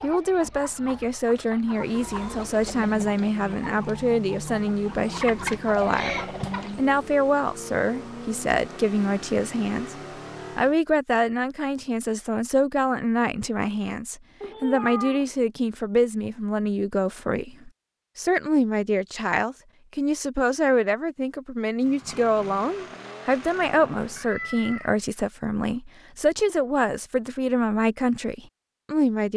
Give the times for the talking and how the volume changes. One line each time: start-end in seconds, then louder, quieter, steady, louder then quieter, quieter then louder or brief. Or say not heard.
0.0-9.9 steady
10.6-29.3 steady.